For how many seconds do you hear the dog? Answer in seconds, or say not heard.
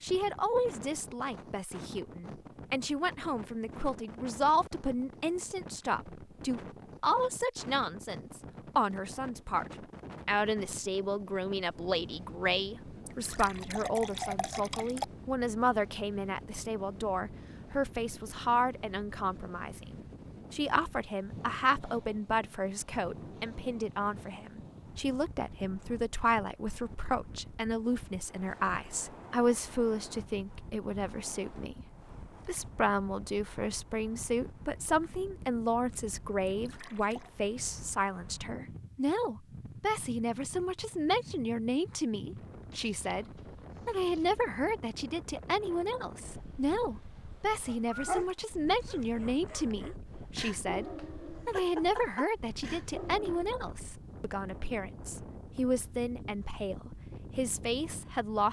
6 s.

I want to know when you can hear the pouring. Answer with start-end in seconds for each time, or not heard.
13.1-15.1, 36.5-37.3, 42.7-44.2.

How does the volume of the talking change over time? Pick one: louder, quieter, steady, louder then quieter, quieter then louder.
steady.